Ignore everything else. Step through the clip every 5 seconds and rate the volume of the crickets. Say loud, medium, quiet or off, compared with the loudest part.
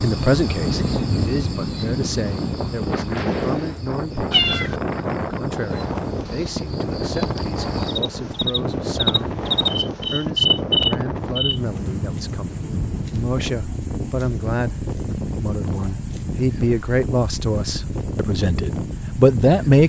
medium, loud, loud, quiet.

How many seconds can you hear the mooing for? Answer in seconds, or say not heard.
not heard.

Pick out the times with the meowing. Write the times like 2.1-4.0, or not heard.
4.3-4.8.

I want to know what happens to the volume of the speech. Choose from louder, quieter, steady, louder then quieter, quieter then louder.
quieter then louder.